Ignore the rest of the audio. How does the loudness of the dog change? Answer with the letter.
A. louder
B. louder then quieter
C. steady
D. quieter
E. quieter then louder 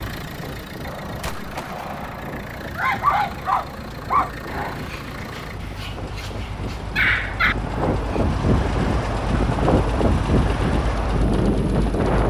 E.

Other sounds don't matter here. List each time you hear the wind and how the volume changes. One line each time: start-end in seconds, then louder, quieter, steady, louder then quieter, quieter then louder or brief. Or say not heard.
0.0-12.2 louder.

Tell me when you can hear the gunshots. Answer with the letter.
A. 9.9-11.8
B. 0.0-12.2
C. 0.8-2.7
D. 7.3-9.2
C.